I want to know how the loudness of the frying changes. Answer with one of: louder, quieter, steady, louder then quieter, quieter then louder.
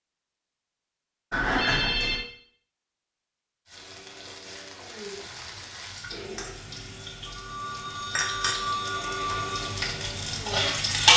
louder.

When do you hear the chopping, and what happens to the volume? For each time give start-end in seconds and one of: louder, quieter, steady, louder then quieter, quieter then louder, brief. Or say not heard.
not heard.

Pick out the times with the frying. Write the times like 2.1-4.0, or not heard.
3.6-11.1.